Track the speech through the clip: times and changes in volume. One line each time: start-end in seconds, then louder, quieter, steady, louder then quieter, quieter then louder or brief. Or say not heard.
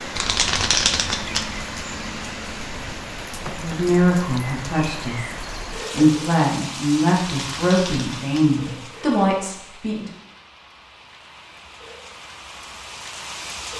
3.5-10.1 steady.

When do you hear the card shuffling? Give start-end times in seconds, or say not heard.
0.1-1.6, 7.2-8.6.